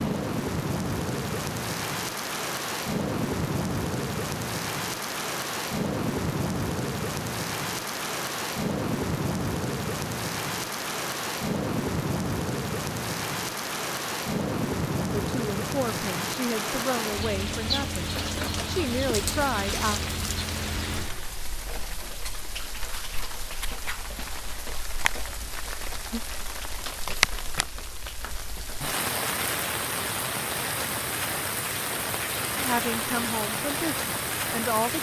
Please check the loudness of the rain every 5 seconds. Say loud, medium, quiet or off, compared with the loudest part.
loud, loud, loud, loud, medium, loud, loud.